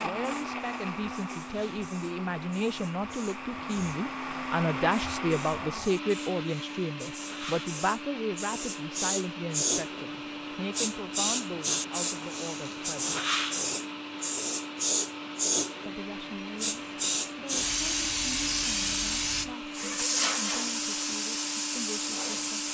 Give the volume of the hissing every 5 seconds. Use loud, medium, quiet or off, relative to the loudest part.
quiet, medium, loud, loud, loud.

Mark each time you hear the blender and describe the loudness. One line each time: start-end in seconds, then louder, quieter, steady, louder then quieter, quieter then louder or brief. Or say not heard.
0.0-22.6 steady.